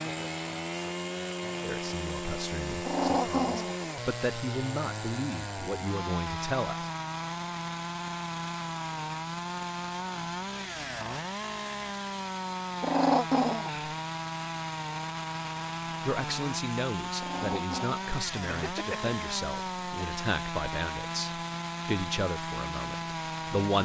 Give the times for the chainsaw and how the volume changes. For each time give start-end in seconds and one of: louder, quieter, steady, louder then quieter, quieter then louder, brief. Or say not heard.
0.0-23.7 steady.